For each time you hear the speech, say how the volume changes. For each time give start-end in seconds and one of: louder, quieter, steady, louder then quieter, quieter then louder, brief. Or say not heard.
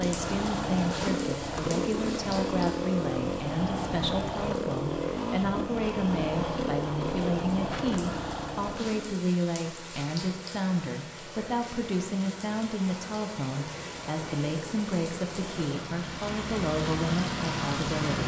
0.0-18.2 steady.